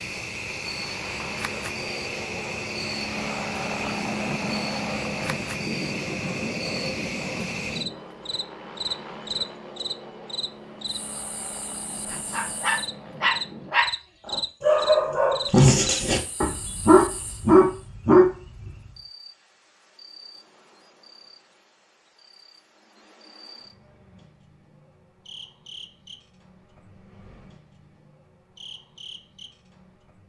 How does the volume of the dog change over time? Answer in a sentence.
The loudness of the dog goes up.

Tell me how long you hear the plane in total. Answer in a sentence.
You can hear the plane for 14 seconds altogether.